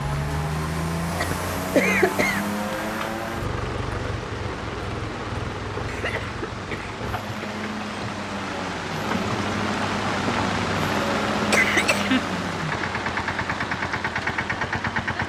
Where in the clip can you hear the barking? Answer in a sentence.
You can't hear the barking here.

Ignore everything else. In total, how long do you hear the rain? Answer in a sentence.
The rain can be heard for 15 seconds in total.